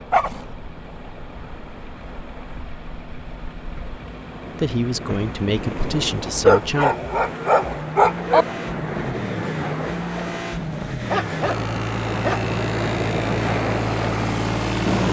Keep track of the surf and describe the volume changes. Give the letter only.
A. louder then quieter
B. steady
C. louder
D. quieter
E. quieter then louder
C.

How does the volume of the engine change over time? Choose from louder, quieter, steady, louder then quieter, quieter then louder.
louder.